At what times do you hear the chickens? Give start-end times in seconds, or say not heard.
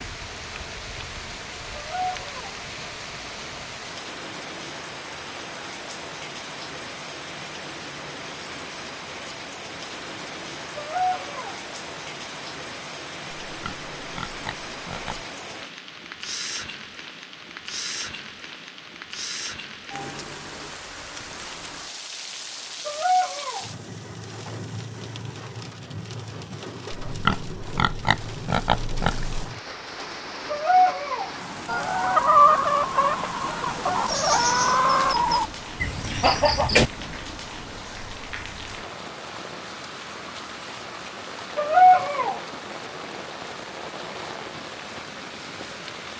31.6-36.9.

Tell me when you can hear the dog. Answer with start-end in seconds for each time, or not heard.
1.7-2.5, 10.8-11.6, 22.9-23.6, 30.5-31.3, 41.5-42.4.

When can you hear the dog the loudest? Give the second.
42 s.